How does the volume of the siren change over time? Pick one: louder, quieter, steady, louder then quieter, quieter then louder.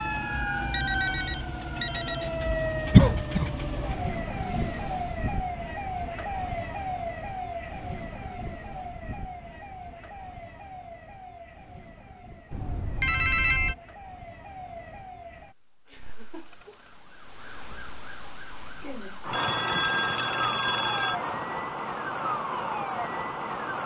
quieter then louder.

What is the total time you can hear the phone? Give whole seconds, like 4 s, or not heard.
5 s.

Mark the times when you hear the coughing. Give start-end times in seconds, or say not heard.
2.9-3.5.